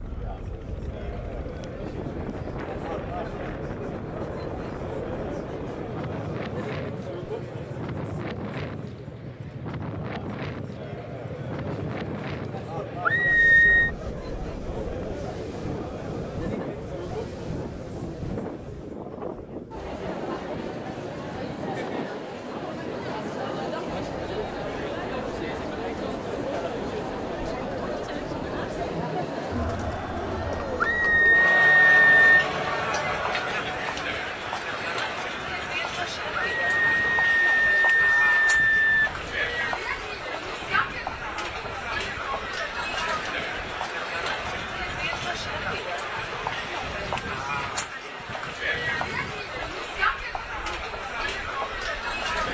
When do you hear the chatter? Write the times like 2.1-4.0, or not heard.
0.0-52.4.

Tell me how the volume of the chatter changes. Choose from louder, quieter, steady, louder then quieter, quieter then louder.
louder.